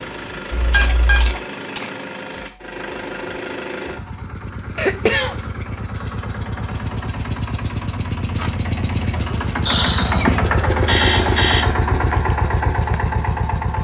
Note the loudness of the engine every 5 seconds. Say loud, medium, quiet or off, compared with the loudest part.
medium, medium, loud.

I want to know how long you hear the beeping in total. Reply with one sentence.
You can hear the beeping for 2 seconds altogether.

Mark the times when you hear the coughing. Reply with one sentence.
You can hear the coughing from 0.7 to 2.6 s, from 4.8 to 5.4 s and from 9.7 to 10.6 s.